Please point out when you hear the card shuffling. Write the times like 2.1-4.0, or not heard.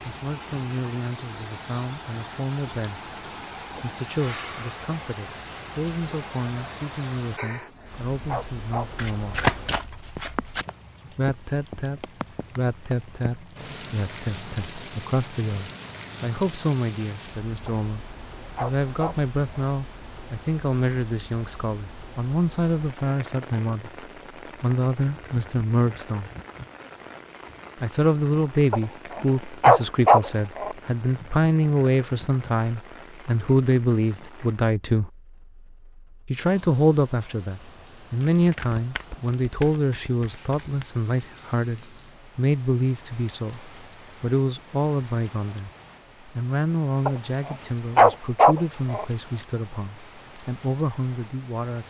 8.9-10.7, 38.2-40.9.